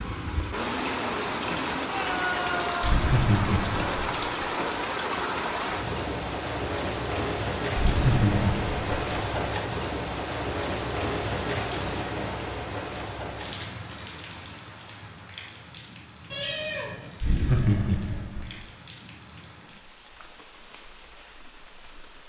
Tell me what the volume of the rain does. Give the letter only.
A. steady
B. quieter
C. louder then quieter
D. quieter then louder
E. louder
B.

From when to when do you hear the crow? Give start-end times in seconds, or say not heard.
not heard.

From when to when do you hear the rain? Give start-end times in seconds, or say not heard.
0.0-22.2.